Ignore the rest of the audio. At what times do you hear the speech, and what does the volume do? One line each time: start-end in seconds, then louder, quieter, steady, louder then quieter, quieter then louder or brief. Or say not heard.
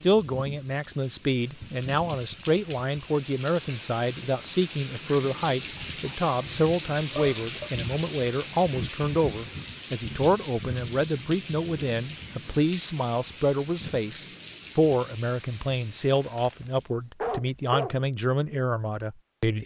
0.0-19.6 steady.